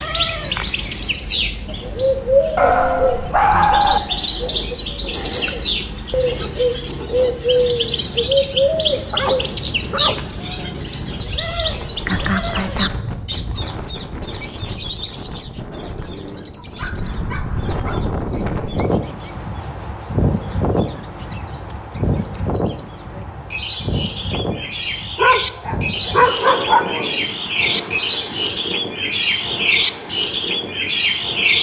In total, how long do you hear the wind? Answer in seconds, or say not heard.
31 s.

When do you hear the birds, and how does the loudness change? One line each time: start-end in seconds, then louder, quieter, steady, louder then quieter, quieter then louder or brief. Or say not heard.
0.0-31.5 quieter then louder.